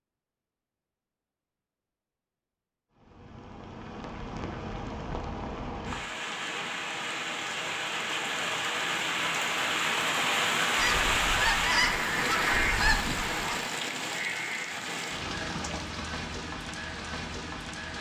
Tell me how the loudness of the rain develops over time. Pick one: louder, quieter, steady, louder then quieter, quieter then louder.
louder then quieter.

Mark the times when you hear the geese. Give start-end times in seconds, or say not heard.
10.8-13.6.